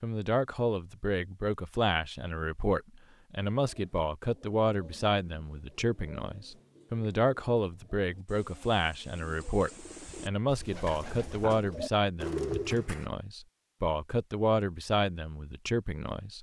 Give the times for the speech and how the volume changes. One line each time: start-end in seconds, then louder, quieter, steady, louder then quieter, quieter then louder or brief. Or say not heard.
0.0-16.3 steady.